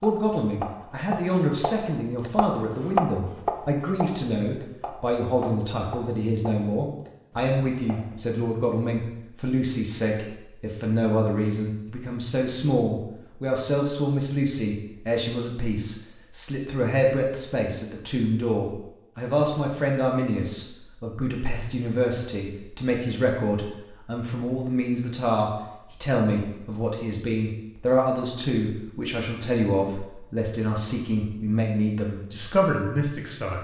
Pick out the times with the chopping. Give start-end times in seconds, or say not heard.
0.0-8.2.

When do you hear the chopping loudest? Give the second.
3 s.